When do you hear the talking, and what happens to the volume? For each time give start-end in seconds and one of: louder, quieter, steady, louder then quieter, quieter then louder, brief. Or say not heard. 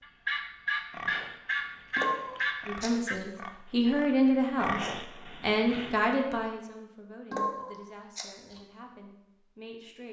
2.6-10.0 quieter.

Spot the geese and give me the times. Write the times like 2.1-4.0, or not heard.
0.0-3.2.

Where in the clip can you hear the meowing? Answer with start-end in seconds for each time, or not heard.
1.9-3.2, 7.3-8.6.